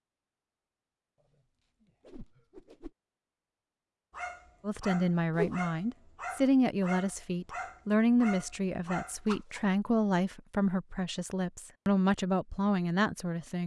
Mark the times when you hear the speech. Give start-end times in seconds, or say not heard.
4.7-13.6.